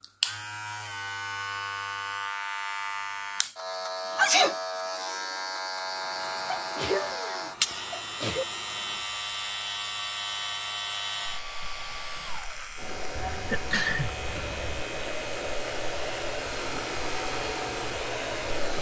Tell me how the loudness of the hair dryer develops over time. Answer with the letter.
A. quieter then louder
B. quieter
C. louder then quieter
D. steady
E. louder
E.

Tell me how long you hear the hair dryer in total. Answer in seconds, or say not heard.
13 s.